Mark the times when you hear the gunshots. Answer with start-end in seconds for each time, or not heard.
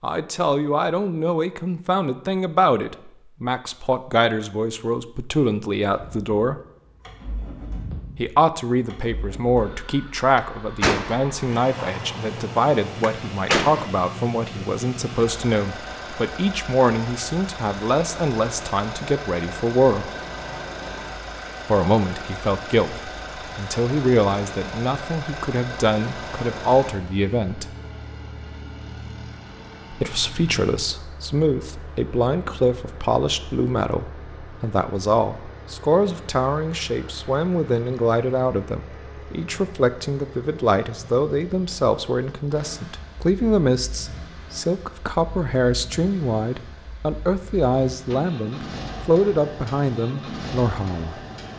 10.3-13.8.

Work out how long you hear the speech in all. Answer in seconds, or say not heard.
46 s.